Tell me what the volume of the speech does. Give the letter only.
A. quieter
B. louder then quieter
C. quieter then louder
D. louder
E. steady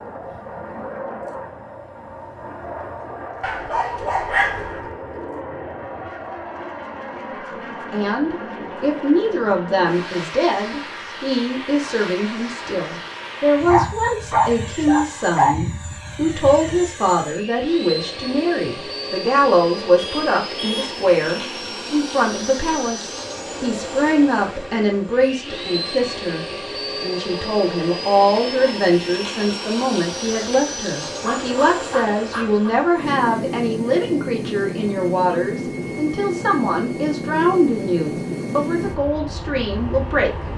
E.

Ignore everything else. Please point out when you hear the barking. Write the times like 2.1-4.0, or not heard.
3.4-4.8, 13.7-15.6, 31.2-32.7.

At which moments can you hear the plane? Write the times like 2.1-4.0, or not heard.
0.0-40.5.